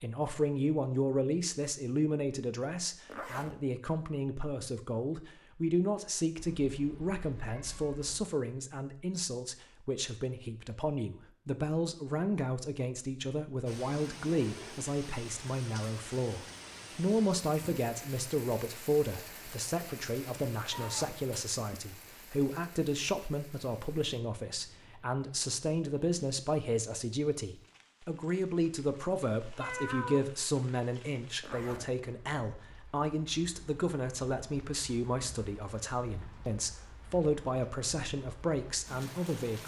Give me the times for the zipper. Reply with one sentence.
You can hear the zipper from 3.0 to 3.6 s, from 20.7 to 21.2 s and from 31.4 to 31.9 s.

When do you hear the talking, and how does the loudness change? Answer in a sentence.
The talking can be heard from 0.0 to 39.6 s, at a steady volume.